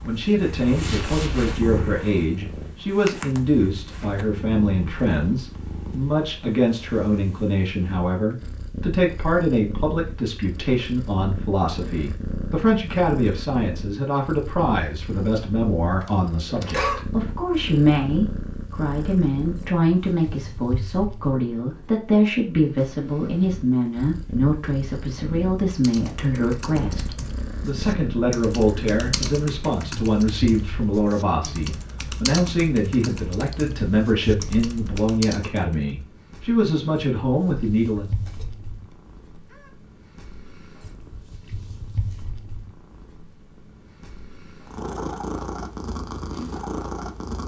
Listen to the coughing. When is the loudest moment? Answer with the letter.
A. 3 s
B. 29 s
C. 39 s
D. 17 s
D.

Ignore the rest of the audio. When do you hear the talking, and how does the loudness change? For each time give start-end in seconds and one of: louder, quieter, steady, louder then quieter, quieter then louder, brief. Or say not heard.
0.0-38.1 steady.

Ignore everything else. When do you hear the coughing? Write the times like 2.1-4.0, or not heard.
16.0-17.1, 38.0-39.7.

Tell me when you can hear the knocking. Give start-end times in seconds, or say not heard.
not heard.